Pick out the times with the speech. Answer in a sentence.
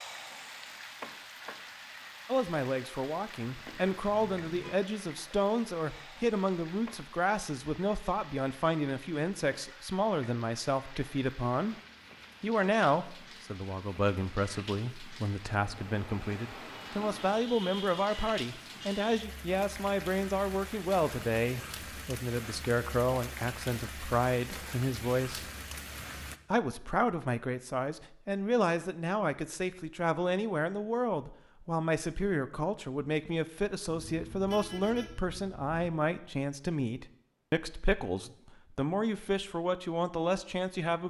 You can hear the speech from 2.2 to 11.8 s, from 12.4 to 25.5 s and from 26.5 to 41.0 s.